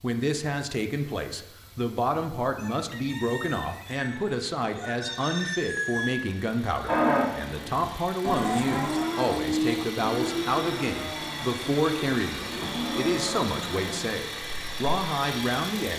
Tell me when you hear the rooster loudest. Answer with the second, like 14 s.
6 s.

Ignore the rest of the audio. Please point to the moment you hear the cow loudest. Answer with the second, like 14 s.
7 s.